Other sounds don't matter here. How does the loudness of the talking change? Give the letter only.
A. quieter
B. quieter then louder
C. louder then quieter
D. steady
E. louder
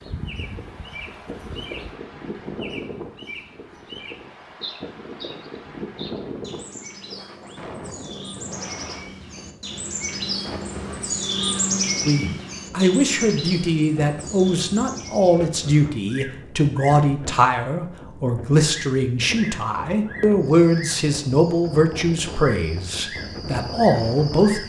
D.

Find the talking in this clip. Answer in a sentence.
You can hear the talking from 12.1 to 24.6 s.